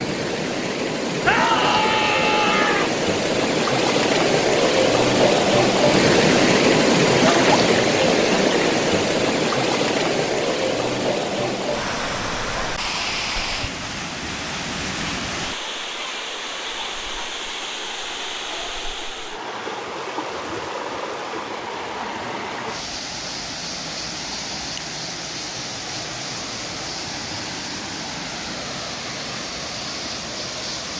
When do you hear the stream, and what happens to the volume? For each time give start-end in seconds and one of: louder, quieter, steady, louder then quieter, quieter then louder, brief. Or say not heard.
0.0-30.9 quieter.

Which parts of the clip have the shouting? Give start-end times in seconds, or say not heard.
1.2-2.9.